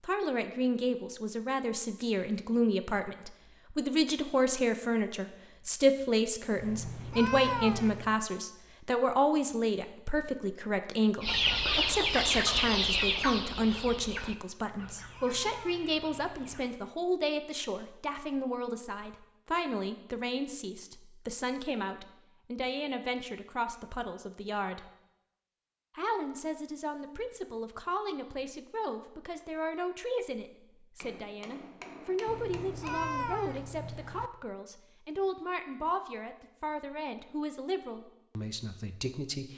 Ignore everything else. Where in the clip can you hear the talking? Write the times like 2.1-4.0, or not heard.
0.0-24.9, 25.9-39.5.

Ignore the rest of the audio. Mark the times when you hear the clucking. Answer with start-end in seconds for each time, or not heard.
11.2-16.8.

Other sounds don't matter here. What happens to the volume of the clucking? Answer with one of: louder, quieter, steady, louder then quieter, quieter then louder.
quieter.